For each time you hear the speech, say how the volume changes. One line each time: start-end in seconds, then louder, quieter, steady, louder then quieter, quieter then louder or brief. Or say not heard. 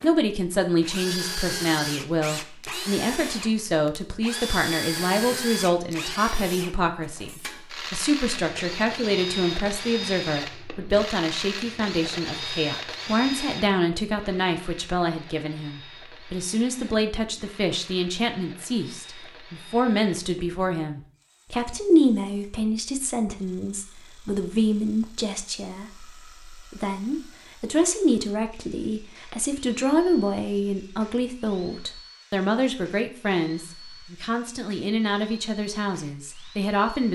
0.0-37.1 steady.